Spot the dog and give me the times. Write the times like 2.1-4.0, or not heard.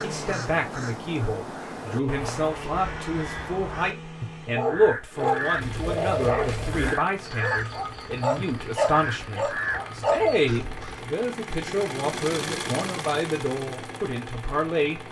4.5-10.4.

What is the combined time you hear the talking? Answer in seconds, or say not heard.
15 s.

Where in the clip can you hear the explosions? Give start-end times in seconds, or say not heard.
not heard.